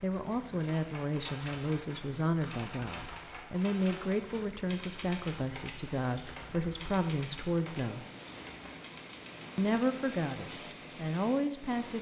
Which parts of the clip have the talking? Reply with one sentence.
You can hear the talking from 0.0 to 8.1 s and from 9.6 to 11.9 s.